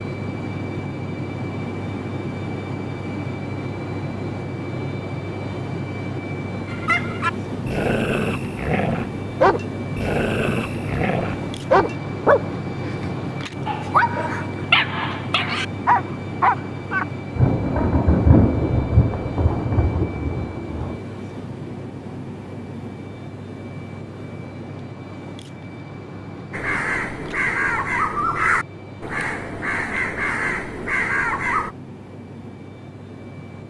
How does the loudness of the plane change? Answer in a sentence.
The volume of the plane goes down.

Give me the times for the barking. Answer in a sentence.
The barking can be heard from 6.7 to 17.1 s.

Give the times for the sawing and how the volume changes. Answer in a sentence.
You can't hear the sawing here.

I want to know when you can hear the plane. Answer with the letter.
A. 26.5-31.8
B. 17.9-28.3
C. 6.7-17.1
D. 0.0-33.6
D.